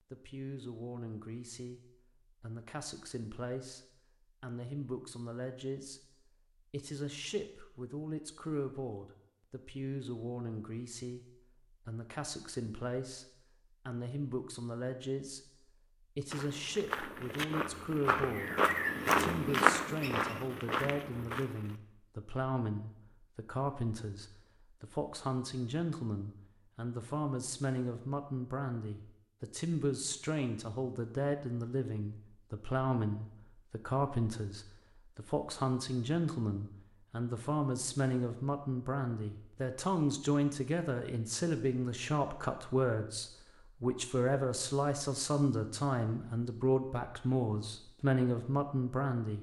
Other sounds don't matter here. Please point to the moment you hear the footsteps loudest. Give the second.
20 s.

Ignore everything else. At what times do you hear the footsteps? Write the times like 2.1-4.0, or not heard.
16.3-21.8.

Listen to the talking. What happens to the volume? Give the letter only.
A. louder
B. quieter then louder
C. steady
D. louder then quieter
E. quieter
A.